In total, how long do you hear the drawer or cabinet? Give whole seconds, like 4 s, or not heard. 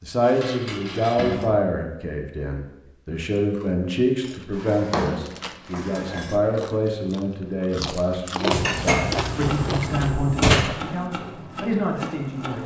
4 s.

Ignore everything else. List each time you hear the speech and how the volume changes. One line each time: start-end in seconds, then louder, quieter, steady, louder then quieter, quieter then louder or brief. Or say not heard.
0.0-12.6 steady.